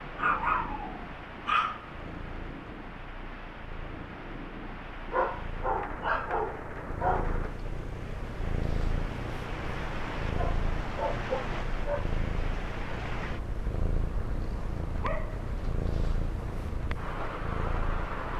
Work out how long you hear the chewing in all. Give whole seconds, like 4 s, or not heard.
not heard.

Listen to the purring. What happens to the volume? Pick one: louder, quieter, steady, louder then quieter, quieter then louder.
louder.